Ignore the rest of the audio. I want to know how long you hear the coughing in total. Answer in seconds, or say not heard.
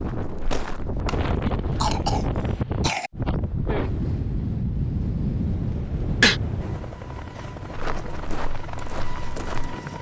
3 s.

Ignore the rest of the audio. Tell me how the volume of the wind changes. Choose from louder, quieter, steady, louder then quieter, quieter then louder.
quieter.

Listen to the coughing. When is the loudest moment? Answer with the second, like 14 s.
6 s.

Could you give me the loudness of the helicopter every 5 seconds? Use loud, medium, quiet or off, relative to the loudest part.
off, loud.